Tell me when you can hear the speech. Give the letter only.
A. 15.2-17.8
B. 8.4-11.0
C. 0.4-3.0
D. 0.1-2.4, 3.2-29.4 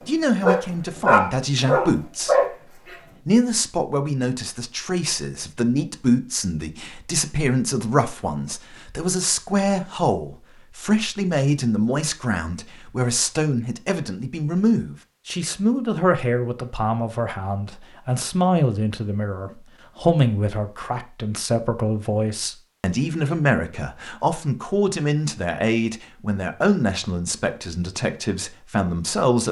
D.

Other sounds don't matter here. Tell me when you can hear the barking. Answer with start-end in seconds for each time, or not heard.
0.4-3.0.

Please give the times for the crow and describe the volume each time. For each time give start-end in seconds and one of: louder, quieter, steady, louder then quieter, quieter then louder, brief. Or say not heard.
not heard.